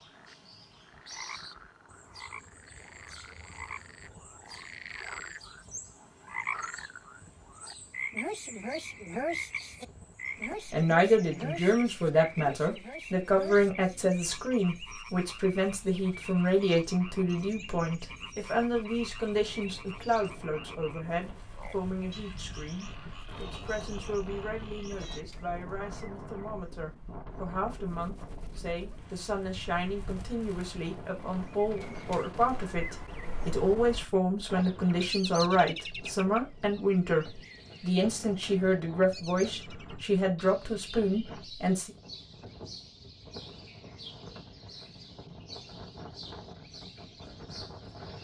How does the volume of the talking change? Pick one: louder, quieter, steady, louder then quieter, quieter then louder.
quieter then louder.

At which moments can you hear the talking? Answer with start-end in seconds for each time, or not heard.
10.7-41.9.